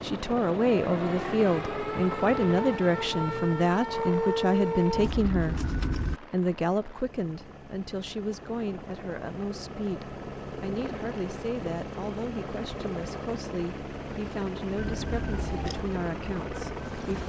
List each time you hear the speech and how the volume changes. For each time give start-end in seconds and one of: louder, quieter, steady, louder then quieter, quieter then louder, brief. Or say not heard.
0.0-17.2 quieter.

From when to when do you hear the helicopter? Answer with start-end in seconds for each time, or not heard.
0.0-17.2.